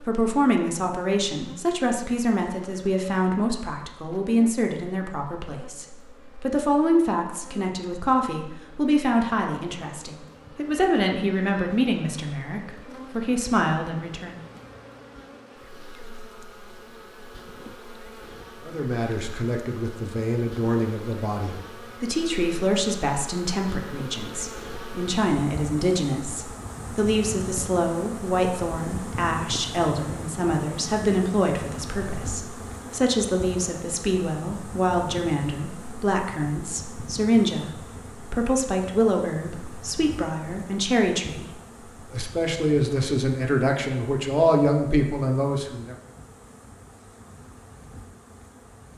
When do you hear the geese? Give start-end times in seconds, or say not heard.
not heard.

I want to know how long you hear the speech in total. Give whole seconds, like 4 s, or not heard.
41 s.